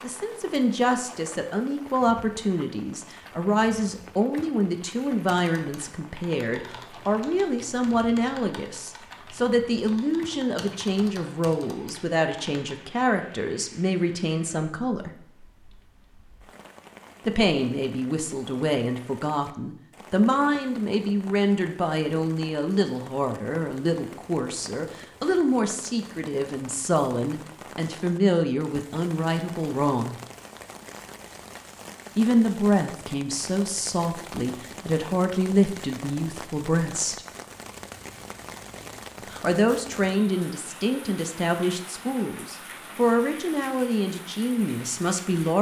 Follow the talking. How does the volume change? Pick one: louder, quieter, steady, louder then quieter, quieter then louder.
steady.